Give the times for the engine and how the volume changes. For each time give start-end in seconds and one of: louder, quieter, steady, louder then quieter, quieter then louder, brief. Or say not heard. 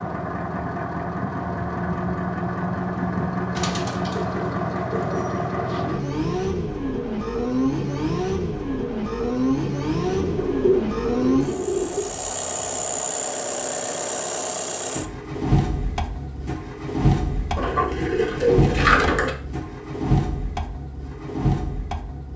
0.0-22.3 steady.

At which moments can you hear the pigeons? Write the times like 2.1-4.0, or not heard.
3.5-5.8, 10.1-12.1, 17.6-19.3.